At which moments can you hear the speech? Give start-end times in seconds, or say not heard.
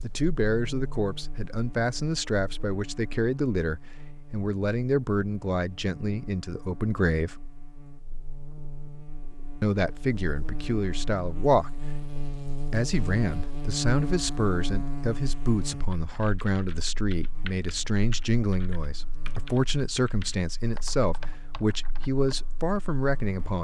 0.0-7.3, 9.6-11.8, 12.7-23.5.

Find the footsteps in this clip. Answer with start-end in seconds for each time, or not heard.
not heard.